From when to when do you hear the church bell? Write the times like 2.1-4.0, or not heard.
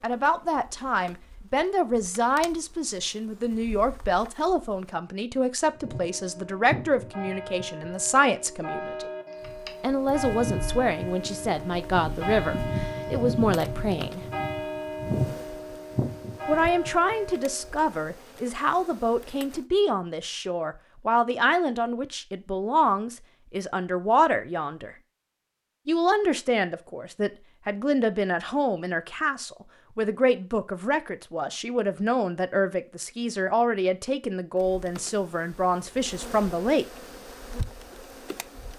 5.7-17.9.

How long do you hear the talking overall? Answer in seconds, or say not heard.
33 s.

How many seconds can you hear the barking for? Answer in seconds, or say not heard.
not heard.